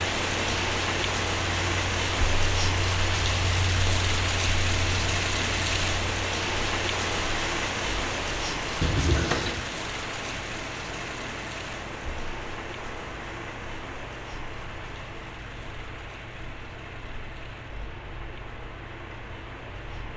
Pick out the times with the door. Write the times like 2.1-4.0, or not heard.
8.8-9.7.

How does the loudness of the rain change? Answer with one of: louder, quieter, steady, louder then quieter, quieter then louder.
quieter.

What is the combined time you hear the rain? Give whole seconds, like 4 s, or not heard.
20 s.